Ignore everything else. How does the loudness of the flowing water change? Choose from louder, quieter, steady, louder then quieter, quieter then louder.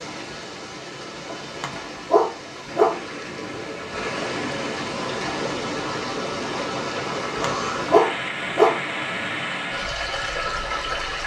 louder.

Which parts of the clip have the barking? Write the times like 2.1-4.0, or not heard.
1.2-3.5, 7.1-9.3.